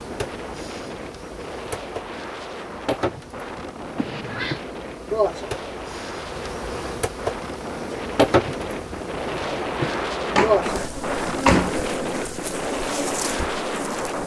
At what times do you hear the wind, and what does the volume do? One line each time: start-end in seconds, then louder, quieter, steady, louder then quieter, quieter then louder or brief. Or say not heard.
0.0-14.2 louder.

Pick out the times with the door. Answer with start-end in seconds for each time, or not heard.
4.0-4.6, 10.3-11.8.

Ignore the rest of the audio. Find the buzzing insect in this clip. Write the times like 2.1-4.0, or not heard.
0.0-14.2.